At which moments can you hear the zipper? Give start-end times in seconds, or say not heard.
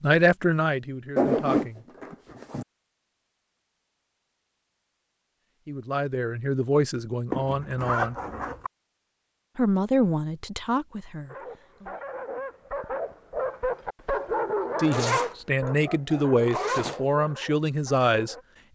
1.1-2.6, 7.3-8.7, 14.9-15.3, 16.1-16.9.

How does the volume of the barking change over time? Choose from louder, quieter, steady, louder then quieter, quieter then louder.
louder then quieter.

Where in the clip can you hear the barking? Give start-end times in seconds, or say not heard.
11.2-18.4.